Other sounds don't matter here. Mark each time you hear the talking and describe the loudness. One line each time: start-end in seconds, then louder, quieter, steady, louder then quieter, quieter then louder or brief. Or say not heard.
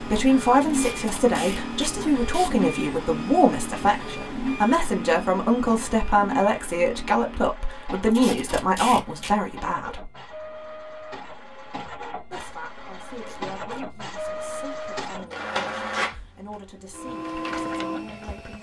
0.0-10.1 steady
12.3-18.5 steady.